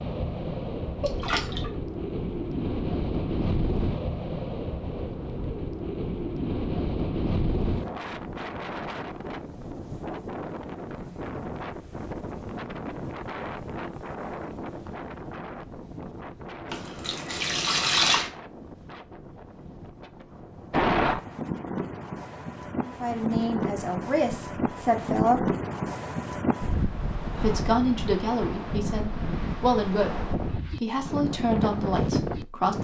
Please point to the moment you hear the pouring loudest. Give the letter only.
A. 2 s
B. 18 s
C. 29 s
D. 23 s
B.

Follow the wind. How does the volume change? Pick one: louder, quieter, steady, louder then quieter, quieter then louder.
quieter then louder.